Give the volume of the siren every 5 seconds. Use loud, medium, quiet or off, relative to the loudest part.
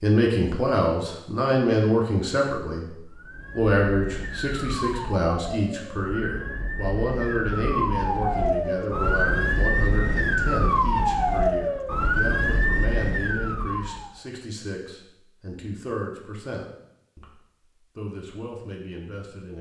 medium, loud, loud, off.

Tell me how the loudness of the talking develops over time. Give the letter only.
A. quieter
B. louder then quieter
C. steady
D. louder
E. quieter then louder
A.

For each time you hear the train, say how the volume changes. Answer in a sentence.
The train can't be heard in this clip.